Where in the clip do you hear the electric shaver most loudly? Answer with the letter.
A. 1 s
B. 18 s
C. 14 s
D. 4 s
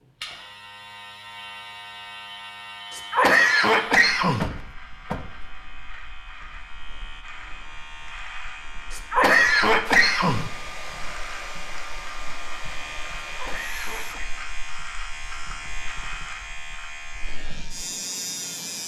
B.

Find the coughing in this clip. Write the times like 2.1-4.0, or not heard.
2.9-4.5, 8.9-10.4, 13.3-14.3.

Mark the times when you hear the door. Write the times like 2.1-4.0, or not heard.
4.4-5.4.